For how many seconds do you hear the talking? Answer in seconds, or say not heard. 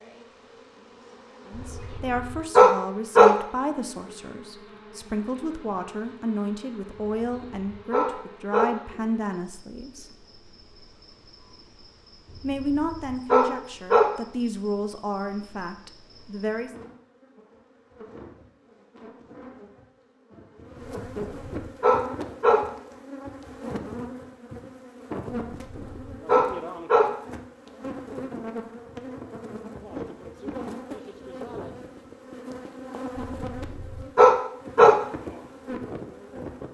13 s.